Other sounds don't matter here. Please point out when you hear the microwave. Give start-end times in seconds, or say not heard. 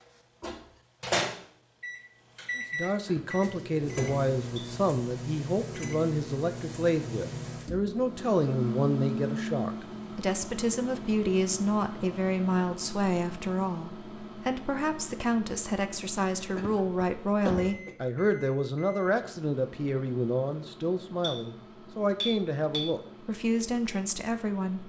0.0-24.8.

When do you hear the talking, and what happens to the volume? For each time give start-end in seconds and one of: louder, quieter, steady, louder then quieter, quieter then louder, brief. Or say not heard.
2.5-24.8 steady.